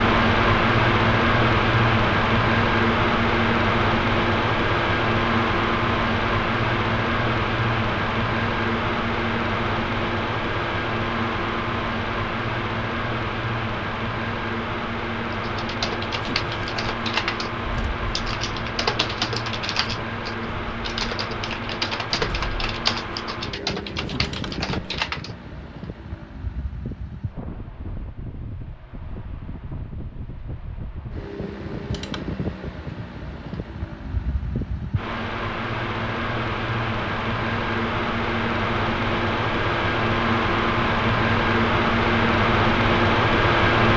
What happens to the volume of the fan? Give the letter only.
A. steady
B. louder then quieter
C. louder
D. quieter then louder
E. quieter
D.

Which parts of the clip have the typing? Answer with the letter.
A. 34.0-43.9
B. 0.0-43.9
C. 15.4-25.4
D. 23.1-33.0
C.